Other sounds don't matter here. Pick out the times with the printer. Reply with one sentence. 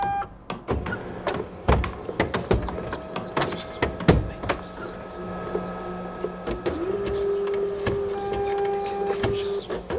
The printer can be heard from 0.0 to 9.9 s.